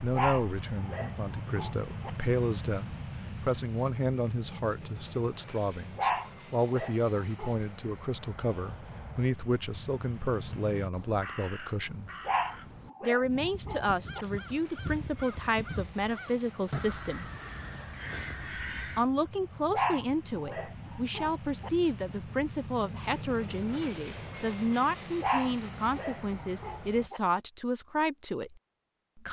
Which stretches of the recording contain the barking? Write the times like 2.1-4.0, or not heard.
0.1-2.1, 6.0-7.5, 12.2-14.2, 19.7-21.7, 25.2-27.2.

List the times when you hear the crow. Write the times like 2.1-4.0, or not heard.
10.4-19.0.